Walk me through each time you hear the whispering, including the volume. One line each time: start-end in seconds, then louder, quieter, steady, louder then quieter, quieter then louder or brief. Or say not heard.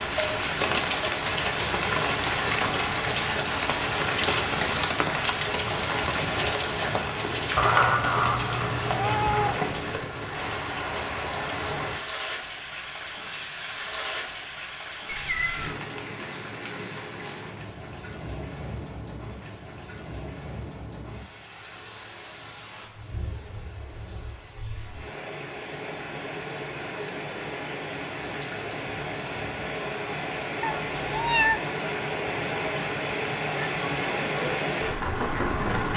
not heard.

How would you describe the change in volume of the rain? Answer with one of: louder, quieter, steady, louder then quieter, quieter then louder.
quieter then louder.